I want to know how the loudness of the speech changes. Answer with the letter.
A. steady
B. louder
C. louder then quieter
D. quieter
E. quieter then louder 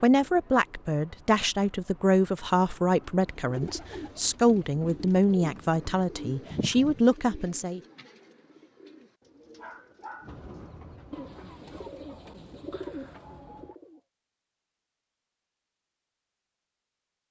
A.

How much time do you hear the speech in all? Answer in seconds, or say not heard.
8 s.